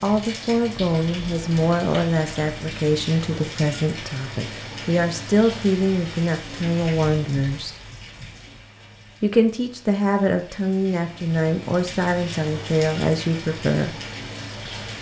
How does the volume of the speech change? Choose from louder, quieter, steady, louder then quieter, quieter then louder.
steady.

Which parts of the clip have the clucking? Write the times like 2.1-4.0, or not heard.
not heard.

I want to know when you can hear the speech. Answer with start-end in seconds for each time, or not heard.
0.0-7.8, 9.2-13.9.